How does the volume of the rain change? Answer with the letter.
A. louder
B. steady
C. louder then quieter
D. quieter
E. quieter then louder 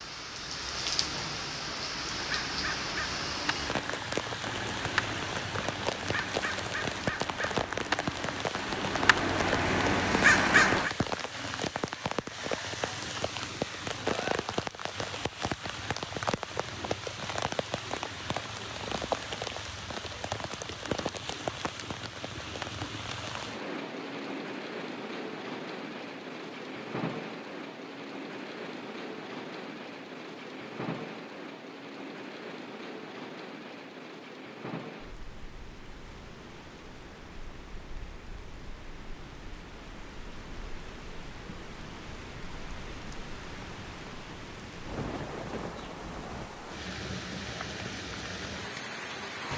D.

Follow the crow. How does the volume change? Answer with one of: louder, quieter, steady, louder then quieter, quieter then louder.
louder.